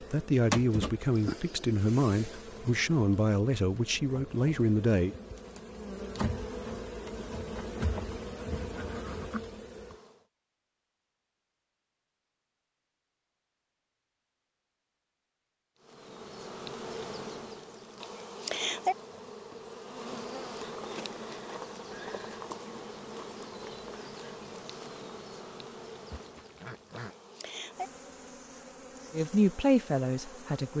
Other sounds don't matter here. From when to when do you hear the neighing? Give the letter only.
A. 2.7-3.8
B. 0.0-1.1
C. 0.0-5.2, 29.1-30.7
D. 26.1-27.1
D.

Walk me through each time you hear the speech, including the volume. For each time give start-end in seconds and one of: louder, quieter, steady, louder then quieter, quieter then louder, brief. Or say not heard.
0.0-5.2 steady
29.1-30.7 brief.